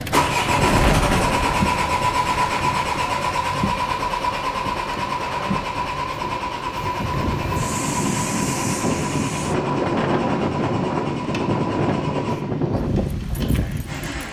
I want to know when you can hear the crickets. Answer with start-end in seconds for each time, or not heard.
not heard.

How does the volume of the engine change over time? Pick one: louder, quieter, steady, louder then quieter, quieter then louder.
quieter.